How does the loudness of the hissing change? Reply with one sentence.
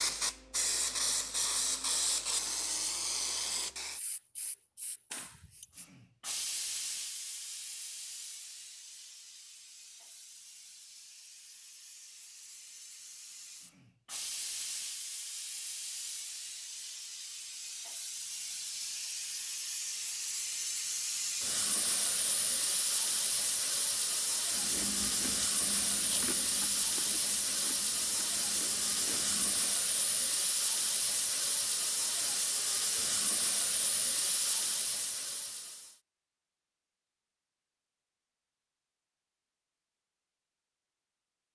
The loudness of the hissing goes down, then up.